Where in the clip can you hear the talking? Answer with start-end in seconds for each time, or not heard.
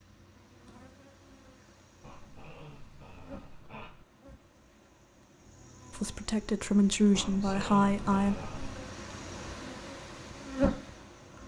5.9-8.3.